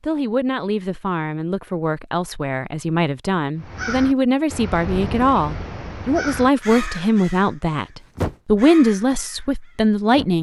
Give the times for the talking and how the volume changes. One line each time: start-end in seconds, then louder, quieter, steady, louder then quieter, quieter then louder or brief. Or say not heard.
0.0-10.3 louder.